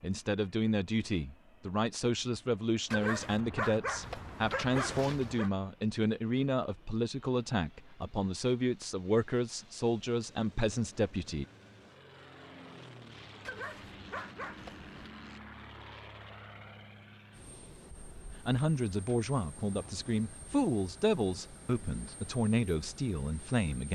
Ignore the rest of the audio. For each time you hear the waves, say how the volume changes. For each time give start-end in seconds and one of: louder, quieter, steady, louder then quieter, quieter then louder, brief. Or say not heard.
not heard.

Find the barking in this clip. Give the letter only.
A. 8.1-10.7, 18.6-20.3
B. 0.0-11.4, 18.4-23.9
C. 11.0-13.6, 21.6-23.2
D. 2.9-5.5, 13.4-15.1
D.